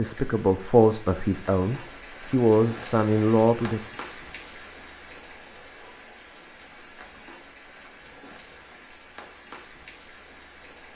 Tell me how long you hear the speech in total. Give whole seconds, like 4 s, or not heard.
4 s.